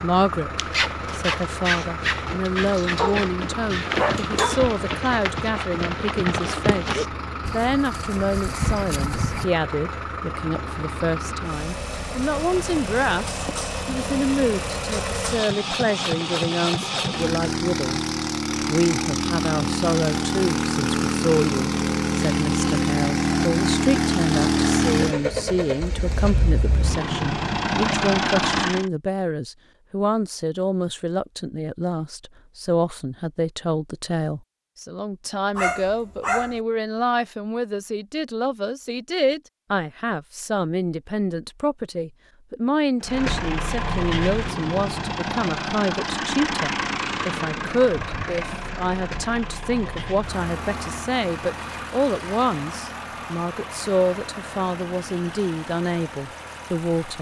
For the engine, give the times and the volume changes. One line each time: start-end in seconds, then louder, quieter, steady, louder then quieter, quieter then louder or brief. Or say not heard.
0.0-28.9 louder
43.0-57.1 quieter.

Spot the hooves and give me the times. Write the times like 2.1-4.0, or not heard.
0.6-9.4.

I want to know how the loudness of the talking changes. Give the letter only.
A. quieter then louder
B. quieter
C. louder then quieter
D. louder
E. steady
E.